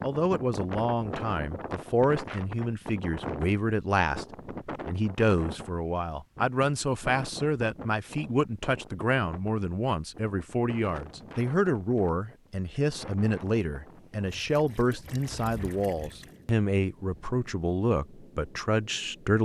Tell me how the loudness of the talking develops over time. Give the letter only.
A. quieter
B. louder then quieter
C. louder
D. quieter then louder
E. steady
E.